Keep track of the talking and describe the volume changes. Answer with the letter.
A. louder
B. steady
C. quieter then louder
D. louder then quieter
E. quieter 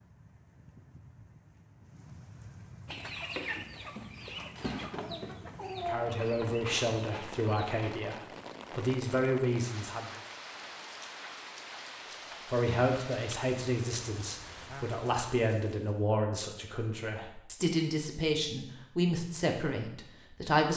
B.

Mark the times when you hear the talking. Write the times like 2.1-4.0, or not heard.
5.8-10.1, 12.4-20.7.